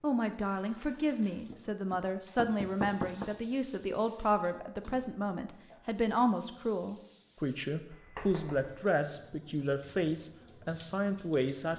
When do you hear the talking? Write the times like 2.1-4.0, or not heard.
0.0-11.7.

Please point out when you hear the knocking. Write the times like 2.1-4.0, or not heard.
1.5-3.3, 7.9-8.9.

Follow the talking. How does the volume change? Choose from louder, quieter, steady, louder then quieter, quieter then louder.
steady.